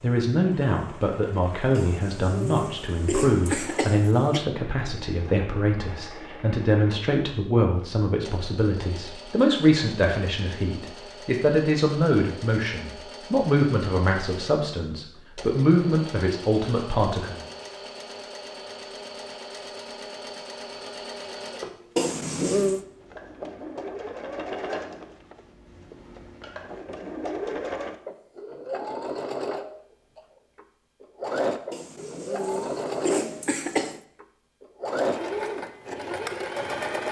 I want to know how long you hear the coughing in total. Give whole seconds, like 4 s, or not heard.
6 s.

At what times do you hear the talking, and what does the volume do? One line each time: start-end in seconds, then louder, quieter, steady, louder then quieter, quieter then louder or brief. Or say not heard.
0.0-17.4 steady.